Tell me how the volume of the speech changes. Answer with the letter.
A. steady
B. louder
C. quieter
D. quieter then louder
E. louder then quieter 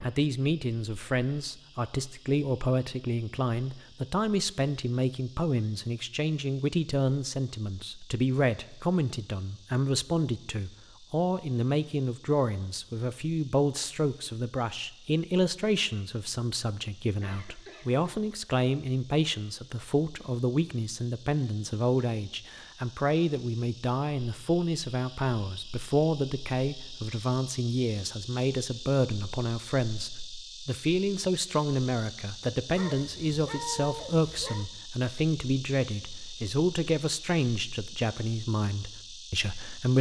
A.